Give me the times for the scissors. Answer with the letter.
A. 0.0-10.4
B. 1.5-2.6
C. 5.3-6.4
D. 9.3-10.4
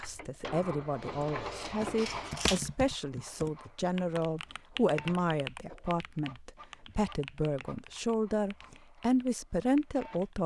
B.